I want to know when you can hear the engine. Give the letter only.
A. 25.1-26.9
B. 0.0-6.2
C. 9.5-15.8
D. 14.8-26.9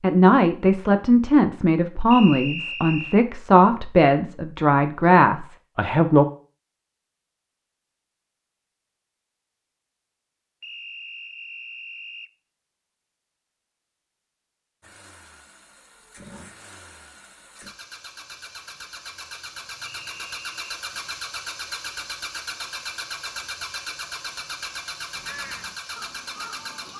D.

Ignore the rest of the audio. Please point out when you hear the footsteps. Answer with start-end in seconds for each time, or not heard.
not heard.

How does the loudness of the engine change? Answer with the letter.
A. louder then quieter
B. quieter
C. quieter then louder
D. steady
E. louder
E.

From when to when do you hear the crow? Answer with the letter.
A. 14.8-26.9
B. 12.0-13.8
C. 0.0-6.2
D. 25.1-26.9
D.